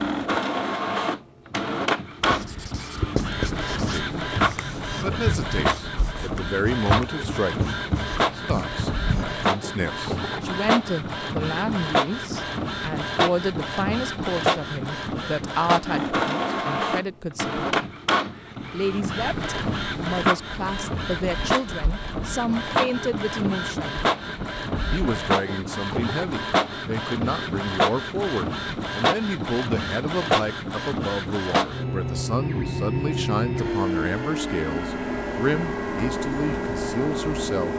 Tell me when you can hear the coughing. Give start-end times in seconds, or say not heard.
not heard.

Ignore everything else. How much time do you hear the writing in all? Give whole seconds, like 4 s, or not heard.
7 s.